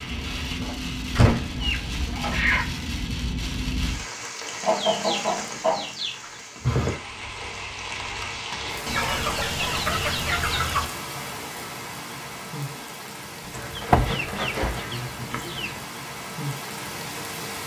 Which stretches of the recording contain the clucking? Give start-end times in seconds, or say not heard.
1.4-2.6, 4.6-6.4, 8.8-10.8, 13.5-15.8.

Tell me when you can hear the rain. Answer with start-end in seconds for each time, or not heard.
0.0-17.6.